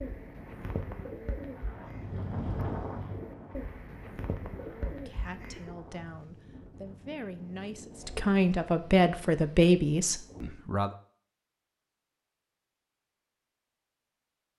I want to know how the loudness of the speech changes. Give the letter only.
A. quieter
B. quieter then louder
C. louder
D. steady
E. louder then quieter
C.